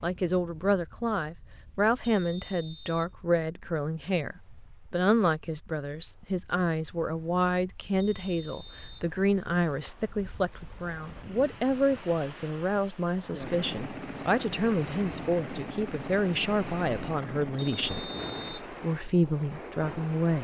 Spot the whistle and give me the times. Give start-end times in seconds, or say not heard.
2.0-3.1, 8.0-9.1, 17.6-18.7.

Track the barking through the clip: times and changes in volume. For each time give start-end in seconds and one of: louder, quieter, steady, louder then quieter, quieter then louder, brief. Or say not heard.
not heard.